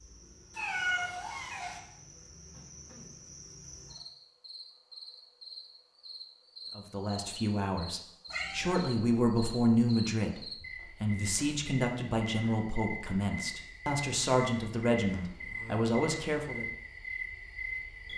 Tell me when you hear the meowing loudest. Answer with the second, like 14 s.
1 s.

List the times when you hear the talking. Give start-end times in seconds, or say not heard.
6.8-16.6.